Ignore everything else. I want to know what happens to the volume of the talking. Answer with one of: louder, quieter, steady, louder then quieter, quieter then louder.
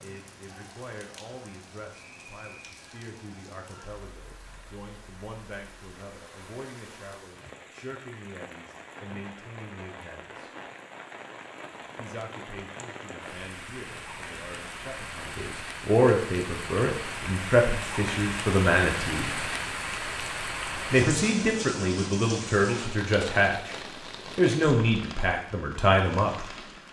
louder.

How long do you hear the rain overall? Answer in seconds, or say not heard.
27 s.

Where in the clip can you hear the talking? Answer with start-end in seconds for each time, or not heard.
0.0-10.5, 11.9-19.4, 20.9-26.4.